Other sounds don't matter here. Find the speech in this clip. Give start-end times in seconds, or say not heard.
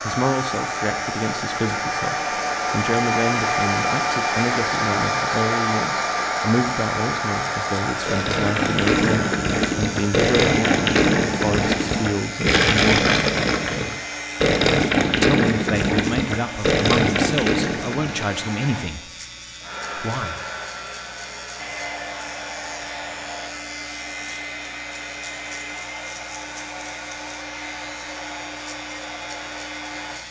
0.1-13.2, 15.1-19.1, 19.9-20.4.